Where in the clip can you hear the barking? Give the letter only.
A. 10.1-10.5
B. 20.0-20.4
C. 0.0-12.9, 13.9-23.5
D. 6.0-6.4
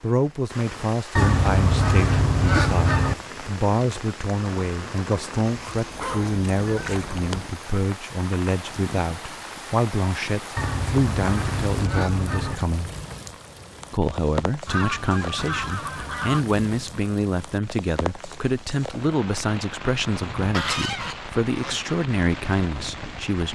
D.